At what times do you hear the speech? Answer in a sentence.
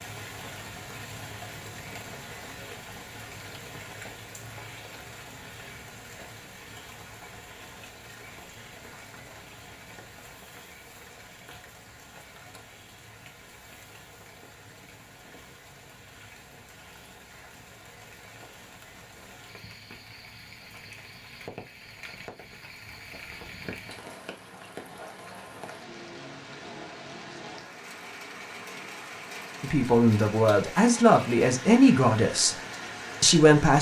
The speech can be heard from 29.6 to 32.5 s and from 33.2 to 33.7 s.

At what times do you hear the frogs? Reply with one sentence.
The frogs can't be heard in this clip.